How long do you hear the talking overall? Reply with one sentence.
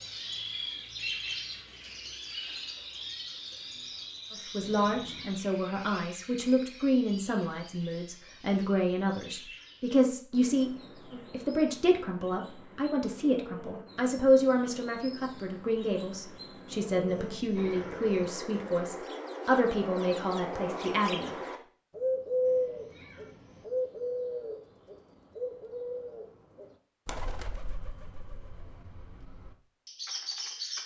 The talking can be heard for 17 seconds in total.